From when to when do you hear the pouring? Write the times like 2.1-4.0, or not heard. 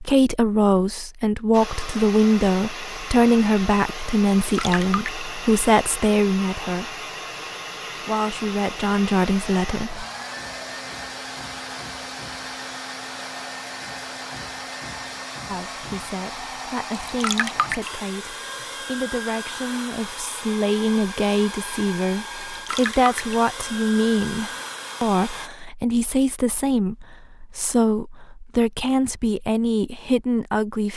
4.4-5.2, 17.1-17.9, 22.4-23.4.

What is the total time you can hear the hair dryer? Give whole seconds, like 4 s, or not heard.
24 s.